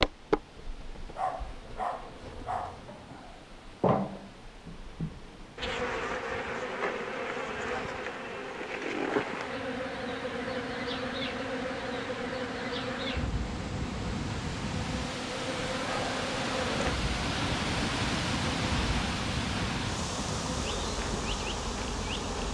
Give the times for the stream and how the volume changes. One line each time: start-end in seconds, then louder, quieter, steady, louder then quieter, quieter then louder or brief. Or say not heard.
0.0-22.4 louder.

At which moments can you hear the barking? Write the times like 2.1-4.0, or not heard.
1.1-2.9.